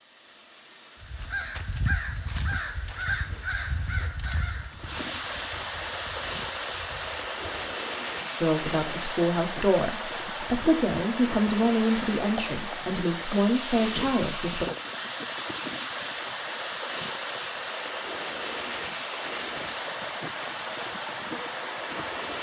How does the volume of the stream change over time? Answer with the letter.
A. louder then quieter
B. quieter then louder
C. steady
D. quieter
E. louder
E.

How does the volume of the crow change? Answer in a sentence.
The volume of the crow goes down.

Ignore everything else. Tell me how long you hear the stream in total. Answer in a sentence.
You can hear the stream for 22 seconds altogether.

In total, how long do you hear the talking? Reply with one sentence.
The talking can be heard for 6 seconds in total.